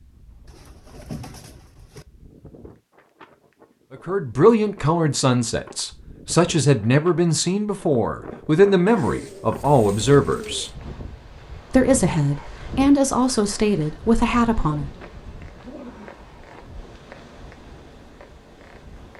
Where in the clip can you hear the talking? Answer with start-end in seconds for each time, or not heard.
3.9-10.7, 11.7-14.9.